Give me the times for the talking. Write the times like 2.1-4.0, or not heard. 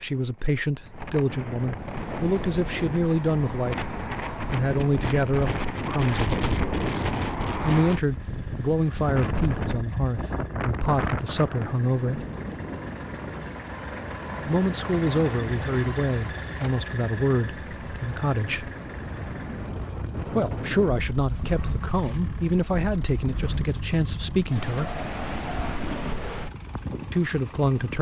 0.0-6.4, 7.6-12.2, 14.4-18.7, 20.2-24.9, 27.1-27.9.